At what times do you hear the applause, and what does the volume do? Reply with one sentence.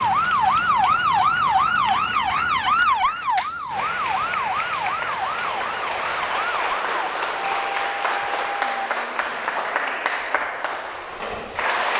The applause can be heard from 0.0 to 11.9 s, getting louder.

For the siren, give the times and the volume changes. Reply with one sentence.
You can hear the siren from 0.0 to 8.9 s, getting quieter.